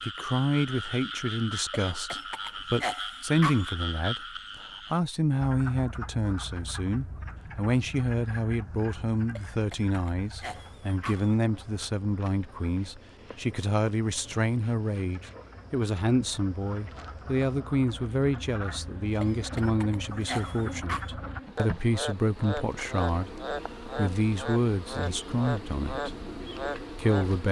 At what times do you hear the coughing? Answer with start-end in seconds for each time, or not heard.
1.7-3.7, 9.3-11.3, 19.2-21.1.